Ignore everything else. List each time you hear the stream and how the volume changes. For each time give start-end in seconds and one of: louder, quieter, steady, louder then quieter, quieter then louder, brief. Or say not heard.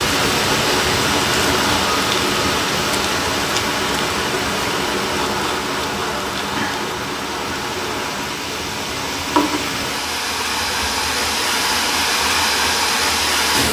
0.0-13.6 quieter then louder.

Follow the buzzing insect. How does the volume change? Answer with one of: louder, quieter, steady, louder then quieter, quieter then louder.
quieter.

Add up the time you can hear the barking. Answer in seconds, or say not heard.
not heard.